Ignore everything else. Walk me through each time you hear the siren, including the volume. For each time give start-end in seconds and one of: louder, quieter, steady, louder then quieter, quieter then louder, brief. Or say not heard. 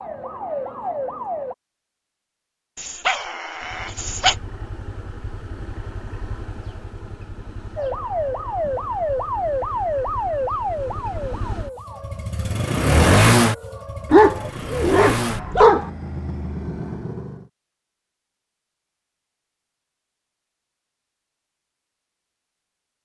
0.0-1.6 brief
7.8-14.5 quieter.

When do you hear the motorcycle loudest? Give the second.
13 s.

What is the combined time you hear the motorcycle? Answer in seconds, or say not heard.
14 s.